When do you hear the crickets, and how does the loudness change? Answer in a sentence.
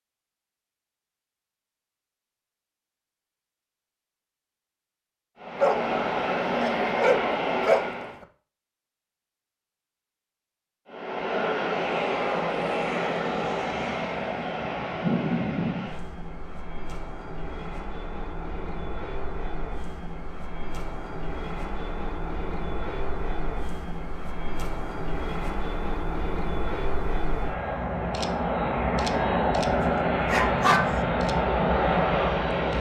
You can't hear the crickets here.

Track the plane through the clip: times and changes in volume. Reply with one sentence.
The plane can be heard briefly from 5.4 to 8.2 s; and from 10.9 to 32.7 s, getting quieter then louder.